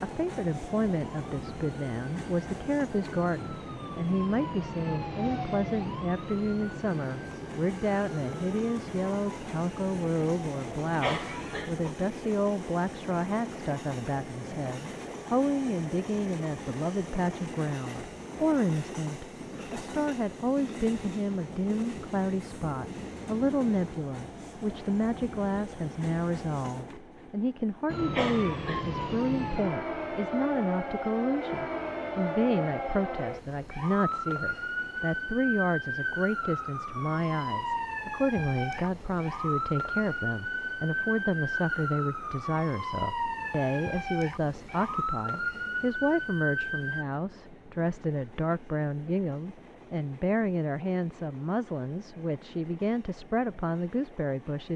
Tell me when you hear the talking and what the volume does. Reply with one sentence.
You can hear the talking from 0.0 to 54.7 s, at a steady volume.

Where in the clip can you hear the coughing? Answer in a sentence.
You can hear the coughing from 11.0 to 11.9 s and from 28.1 to 29.0 s.